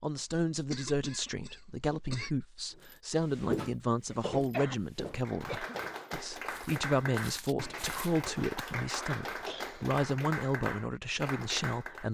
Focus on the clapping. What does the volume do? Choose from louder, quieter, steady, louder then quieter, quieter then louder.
steady.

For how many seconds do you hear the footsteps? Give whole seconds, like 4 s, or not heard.
5 s.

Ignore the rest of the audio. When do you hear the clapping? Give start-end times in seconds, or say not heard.
5.2-12.0.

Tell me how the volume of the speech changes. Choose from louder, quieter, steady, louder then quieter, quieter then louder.
steady.